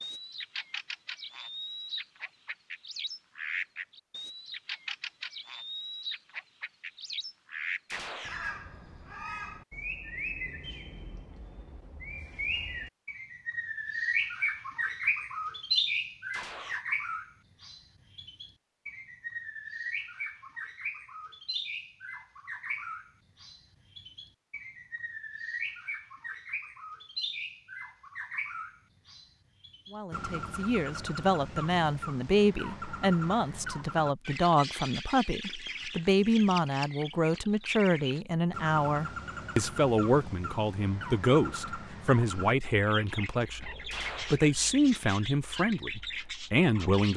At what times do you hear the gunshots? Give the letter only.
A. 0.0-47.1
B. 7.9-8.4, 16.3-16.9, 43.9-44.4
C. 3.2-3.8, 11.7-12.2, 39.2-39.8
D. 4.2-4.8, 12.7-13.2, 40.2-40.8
B.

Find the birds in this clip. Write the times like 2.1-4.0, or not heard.
0.0-47.1.